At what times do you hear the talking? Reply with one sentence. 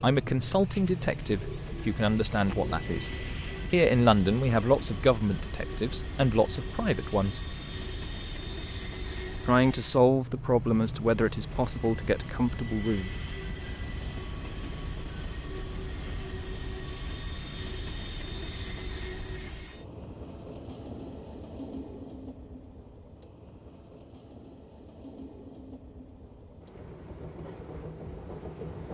You can hear the talking from 0.0 to 3.1 s, from 3.7 to 7.5 s and from 9.4 to 13.1 s.